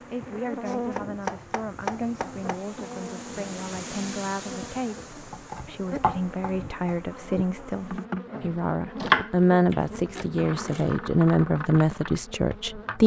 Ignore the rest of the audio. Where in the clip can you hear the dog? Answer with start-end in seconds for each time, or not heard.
not heard.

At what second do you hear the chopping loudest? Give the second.
9 s.